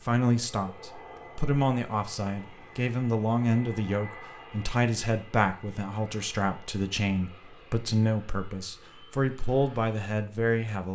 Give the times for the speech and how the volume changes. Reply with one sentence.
The speech can be heard from 0.0 to 10.9 s, at a steady volume.